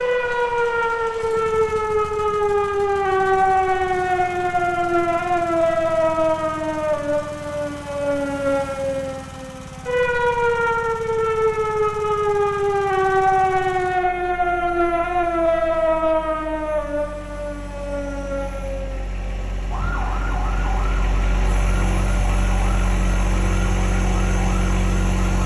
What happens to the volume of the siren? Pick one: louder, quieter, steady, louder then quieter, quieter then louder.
quieter.